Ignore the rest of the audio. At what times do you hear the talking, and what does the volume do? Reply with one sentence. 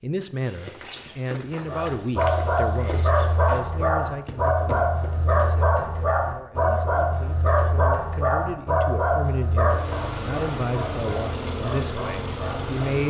The talking can be heard from 0.0 to 13.0 s, getting quieter then louder.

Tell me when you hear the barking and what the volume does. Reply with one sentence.
You can hear the barking from 1.6 to 12.8 s, getting quieter.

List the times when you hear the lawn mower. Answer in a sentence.
The lawn mower can be heard from 9.7 to 13.0 s.